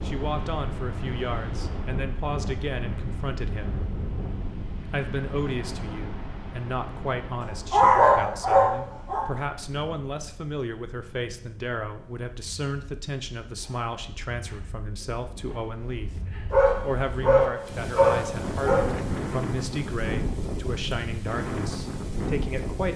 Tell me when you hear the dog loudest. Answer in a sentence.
The volume of the dog peaks at 8 seconds.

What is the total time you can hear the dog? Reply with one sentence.
The dog can be heard for 4 seconds in total.